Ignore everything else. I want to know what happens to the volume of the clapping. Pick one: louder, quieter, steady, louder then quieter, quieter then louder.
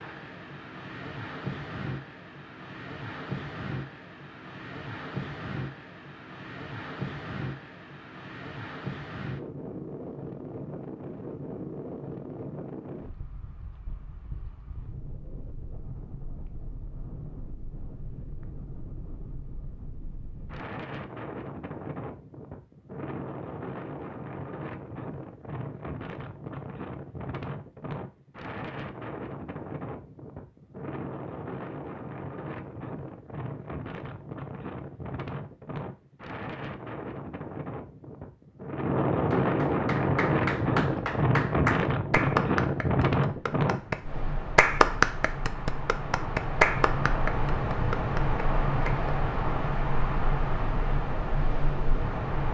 louder then quieter.